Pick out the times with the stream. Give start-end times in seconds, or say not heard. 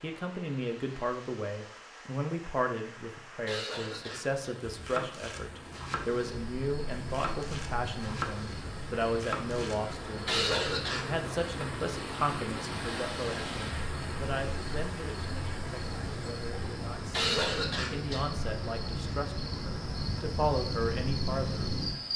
0.0-22.1.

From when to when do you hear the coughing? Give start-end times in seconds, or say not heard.
3.5-4.5, 10.2-11.1, 17.1-18.2.